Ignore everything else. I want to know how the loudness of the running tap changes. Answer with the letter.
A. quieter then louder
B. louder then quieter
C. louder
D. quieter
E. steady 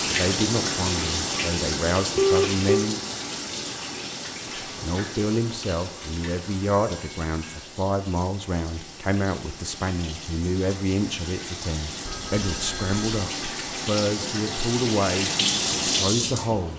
A.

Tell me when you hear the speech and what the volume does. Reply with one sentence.
The speech can be heard briefly from 0.1 to 3.0 s; and from 4.6 to 16.7 s, at a steady volume.